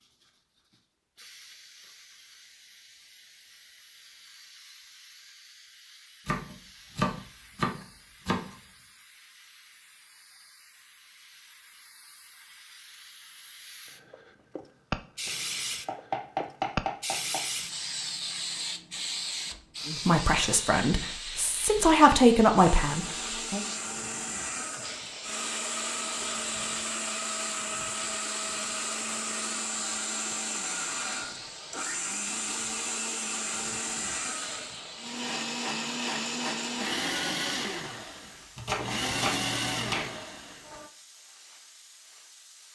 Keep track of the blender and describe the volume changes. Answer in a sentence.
The loudness of the blender stays about the same.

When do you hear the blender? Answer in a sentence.
You can hear the blender from 22.6 to 40.9 s.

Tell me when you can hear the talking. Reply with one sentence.
You can hear the talking from 19.9 to 23.6 s.